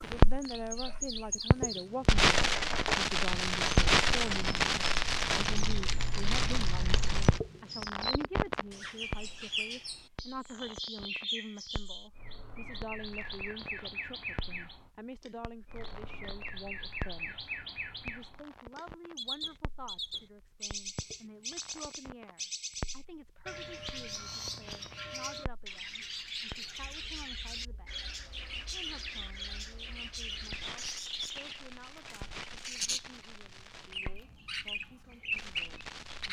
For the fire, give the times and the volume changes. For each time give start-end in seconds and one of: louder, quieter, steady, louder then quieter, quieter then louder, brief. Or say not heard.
0.0-36.2 quieter.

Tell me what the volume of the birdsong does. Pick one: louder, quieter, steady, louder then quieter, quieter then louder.
steady.